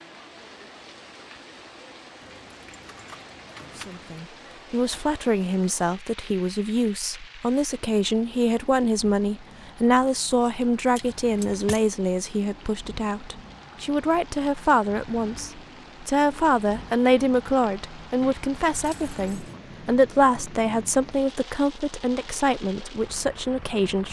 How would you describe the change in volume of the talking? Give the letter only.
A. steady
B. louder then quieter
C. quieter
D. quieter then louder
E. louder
A.